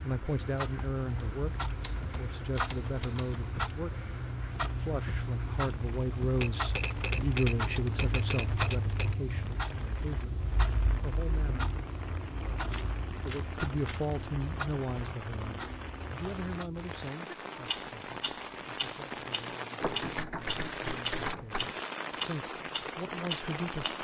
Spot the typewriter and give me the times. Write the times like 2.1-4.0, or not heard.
1.8-3.5, 6.4-9.2, 12.2-14.2, 19.8-21.8.